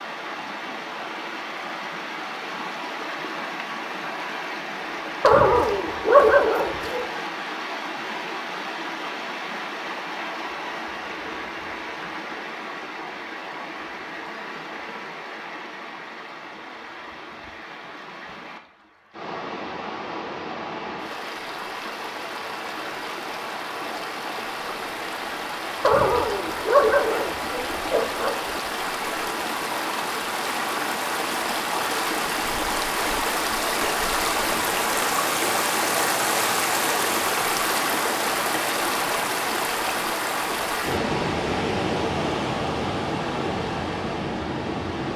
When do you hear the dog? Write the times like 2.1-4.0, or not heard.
5.2-7.1, 25.8-28.4.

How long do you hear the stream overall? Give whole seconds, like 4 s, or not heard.
45 s.